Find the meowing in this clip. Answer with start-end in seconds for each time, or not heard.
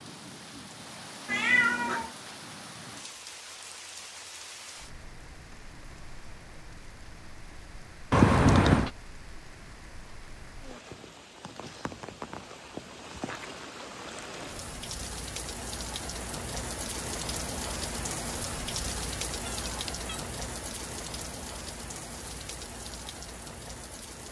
1.2-2.1, 8.1-8.9, 19.4-20.2.